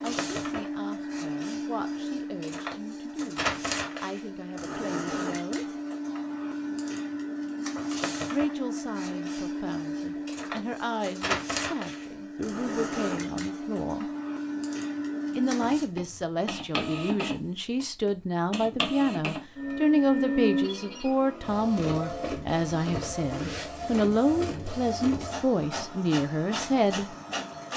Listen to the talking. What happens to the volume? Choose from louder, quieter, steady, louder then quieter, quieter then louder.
louder.